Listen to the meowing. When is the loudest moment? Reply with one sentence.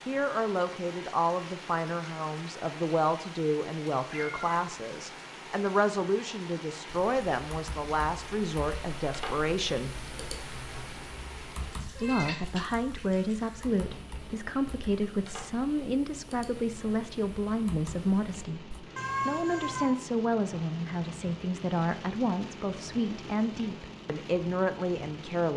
The volume of the meowing peaks at 19 seconds.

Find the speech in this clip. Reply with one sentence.
You can hear the speech from 0.1 to 9.9 s and from 11.9 to 25.5 s.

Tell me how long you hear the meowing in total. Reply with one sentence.
The meowing can be heard for 2 seconds in total.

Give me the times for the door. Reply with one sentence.
You can't hear the door here.